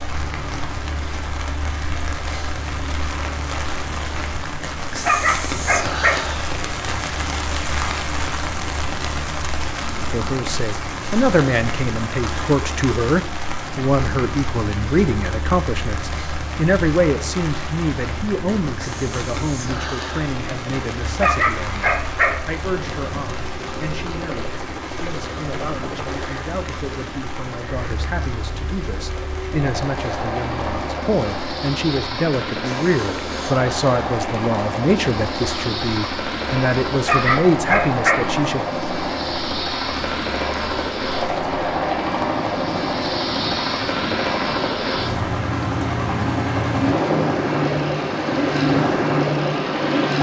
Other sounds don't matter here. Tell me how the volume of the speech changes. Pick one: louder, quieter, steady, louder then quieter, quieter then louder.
quieter then louder.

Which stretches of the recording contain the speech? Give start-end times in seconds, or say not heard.
10.1-38.6.